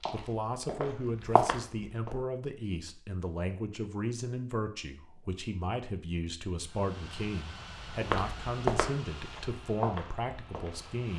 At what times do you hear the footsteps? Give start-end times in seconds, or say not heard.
0.0-2.1, 7.9-10.9.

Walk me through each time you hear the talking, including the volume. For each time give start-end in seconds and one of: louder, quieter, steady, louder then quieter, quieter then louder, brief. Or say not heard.
0.1-11.1 steady.